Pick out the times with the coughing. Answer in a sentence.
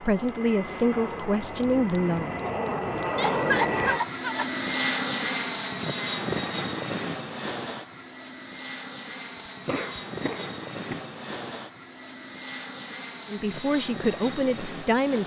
You can hear the coughing from 3.1 to 4.5 s and from 9.3 to 11.0 s.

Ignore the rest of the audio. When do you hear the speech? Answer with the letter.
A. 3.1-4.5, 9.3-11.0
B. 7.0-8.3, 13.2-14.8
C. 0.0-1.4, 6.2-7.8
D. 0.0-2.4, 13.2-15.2
D.